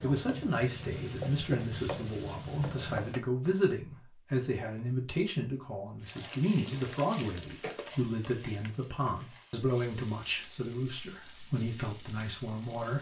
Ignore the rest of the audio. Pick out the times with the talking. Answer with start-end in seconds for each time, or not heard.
0.0-12.9.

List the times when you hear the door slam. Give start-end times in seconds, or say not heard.
not heard.